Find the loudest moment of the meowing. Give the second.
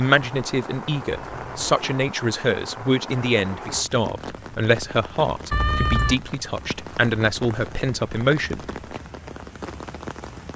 6 s.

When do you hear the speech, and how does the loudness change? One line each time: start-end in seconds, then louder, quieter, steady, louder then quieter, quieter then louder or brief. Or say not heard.
0.0-8.7 steady.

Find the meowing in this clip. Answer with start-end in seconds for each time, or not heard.
1.1-1.8, 5.5-6.2.